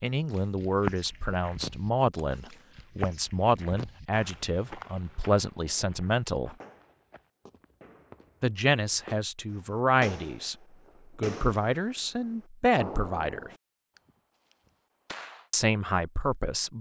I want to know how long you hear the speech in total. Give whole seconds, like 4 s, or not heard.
12 s.